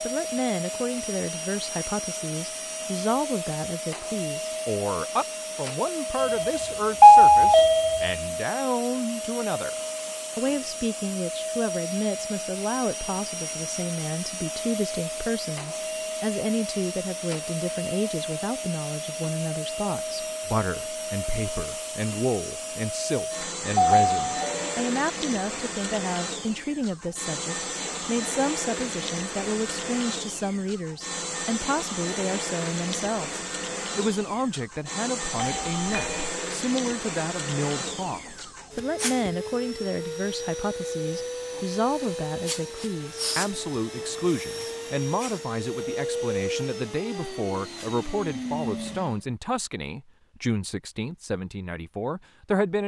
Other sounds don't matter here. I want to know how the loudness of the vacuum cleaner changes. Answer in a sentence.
The loudness of the vacuum cleaner stays about the same.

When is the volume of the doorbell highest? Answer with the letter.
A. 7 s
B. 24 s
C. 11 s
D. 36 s
A.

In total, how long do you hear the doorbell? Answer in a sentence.
The doorbell can be heard for 4 seconds in total.